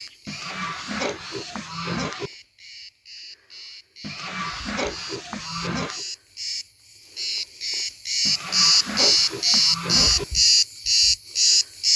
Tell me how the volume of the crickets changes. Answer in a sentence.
The loudness of the crickets goes up.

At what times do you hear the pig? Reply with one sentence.
You can hear the pig from 0.2 to 2.3 s, from 4.0 to 6.0 s and from 8.2 to 10.2 s.